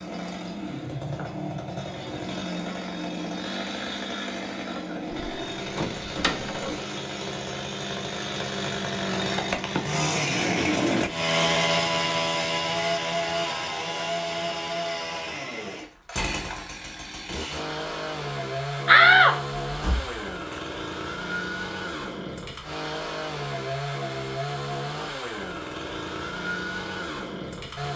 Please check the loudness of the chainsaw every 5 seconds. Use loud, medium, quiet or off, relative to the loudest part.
medium, medium, loud, medium, medium, medium.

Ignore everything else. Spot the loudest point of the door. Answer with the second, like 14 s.
19 s.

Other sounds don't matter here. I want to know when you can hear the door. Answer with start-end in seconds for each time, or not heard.
5.1-6.8, 18.9-20.6.